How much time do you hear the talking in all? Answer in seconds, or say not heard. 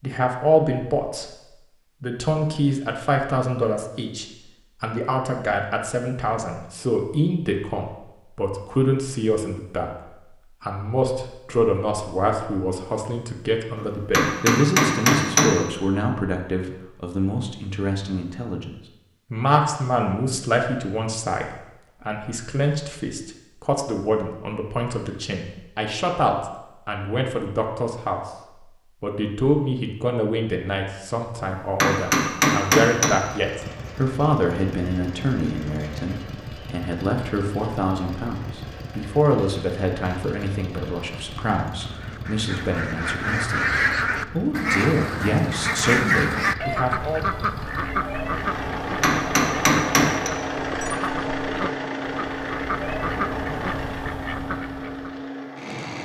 45 s.